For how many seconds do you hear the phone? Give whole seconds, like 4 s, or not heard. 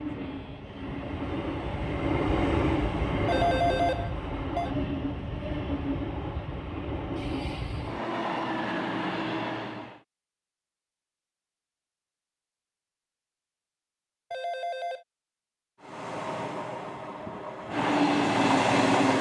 2 s.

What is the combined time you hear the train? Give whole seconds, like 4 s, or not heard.
13 s.